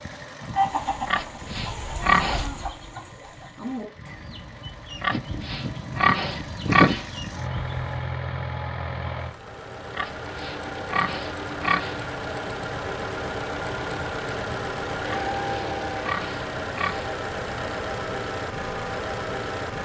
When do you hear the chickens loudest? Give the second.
1 s.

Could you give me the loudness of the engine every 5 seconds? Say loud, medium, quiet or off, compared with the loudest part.
quiet, loud, loud, loud.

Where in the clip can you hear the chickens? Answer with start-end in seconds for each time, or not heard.
0.5-8.1.